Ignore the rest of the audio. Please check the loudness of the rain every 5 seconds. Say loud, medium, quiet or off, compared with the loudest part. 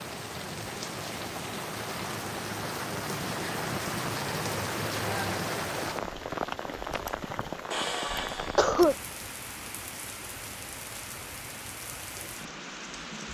loud, loud, medium.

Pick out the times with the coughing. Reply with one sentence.
You can hear the coughing from 7.2 to 8.9 s.